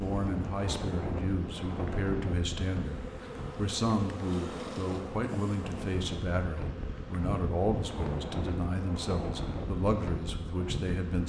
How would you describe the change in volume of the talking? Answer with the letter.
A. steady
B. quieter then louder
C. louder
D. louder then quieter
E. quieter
A.